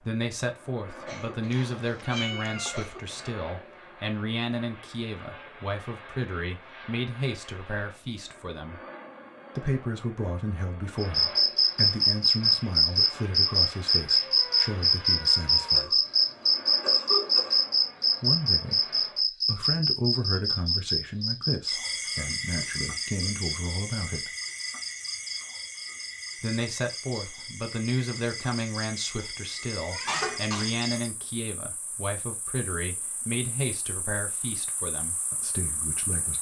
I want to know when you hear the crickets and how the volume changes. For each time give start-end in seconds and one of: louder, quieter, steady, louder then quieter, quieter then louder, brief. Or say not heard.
10.9-36.3 quieter.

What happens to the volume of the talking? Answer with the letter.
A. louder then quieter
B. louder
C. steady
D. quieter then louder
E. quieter
C.